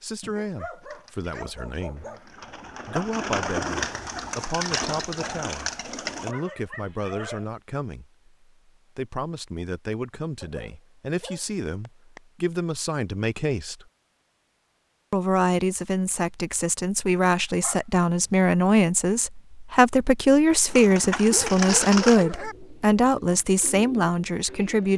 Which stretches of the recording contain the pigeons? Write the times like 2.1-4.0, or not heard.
0.9-6.3, 20.6-24.9.